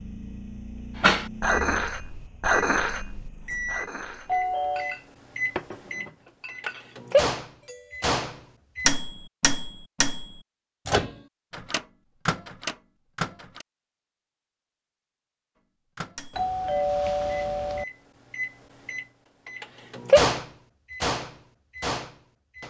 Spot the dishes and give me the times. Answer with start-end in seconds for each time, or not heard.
0.9-7.0.